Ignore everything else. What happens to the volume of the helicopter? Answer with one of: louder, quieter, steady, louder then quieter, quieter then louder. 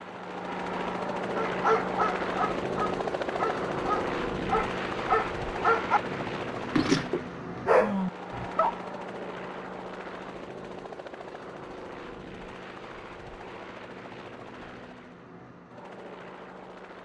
quieter.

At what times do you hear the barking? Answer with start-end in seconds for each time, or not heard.
1.4-8.8.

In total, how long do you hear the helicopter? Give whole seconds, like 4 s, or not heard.
17 s.